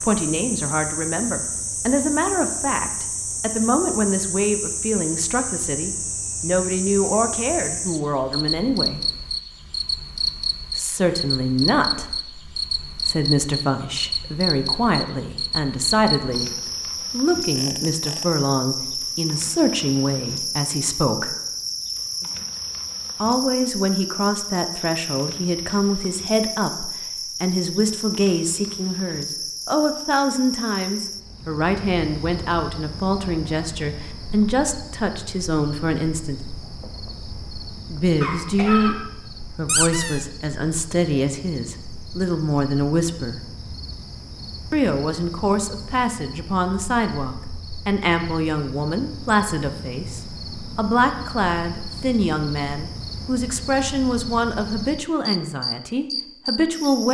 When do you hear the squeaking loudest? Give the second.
40 s.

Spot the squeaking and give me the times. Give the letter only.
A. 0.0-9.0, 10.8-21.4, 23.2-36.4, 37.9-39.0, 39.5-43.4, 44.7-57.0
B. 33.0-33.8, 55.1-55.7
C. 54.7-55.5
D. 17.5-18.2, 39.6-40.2
D.